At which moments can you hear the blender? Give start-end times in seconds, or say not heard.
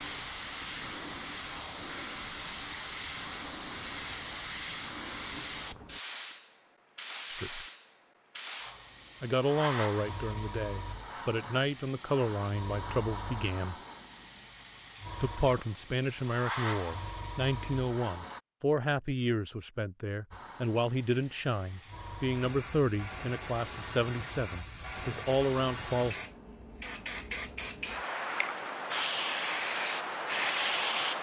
not heard.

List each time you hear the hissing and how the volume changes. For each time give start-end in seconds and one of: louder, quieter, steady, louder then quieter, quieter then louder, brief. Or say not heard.
0.0-18.4 steady
20.3-31.1 louder.